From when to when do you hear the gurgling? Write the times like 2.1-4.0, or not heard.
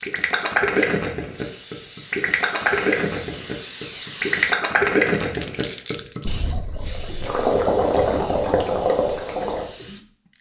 0.0-9.9.